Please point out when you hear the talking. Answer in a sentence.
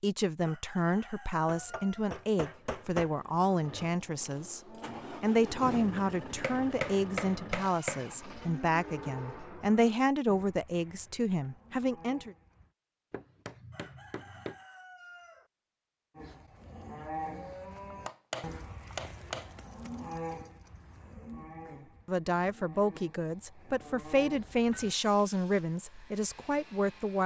The talking can be heard from 0.0 to 4.6 s, from 5.2 to 12.3 s and from 21.7 to 27.2 s.